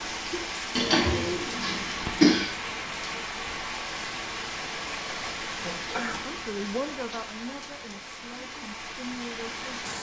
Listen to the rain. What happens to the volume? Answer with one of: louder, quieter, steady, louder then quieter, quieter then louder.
quieter.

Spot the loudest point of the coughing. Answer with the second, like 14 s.
2 s.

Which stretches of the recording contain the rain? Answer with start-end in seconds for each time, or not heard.
0.0-9.9.